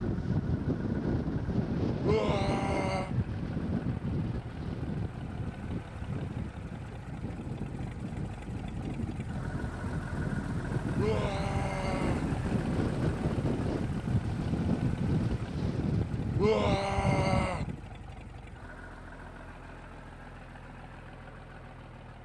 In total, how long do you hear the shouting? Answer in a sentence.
You can hear the shouting for 4 seconds altogether.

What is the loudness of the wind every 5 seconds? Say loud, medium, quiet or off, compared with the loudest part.
loud, medium, loud, loud, off.